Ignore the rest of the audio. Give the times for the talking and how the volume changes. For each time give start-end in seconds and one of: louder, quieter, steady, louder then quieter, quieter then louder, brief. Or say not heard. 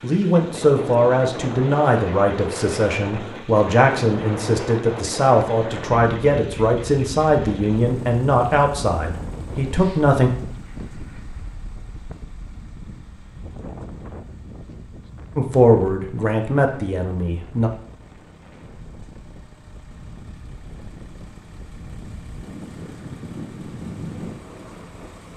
0.0-10.3 steady
15.3-17.7 brief.